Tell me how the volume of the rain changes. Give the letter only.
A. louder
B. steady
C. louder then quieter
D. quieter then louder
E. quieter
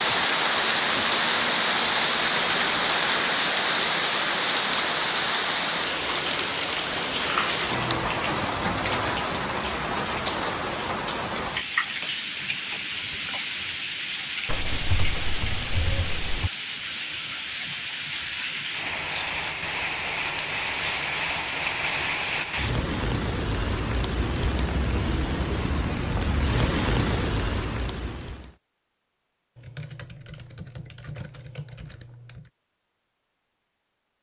E.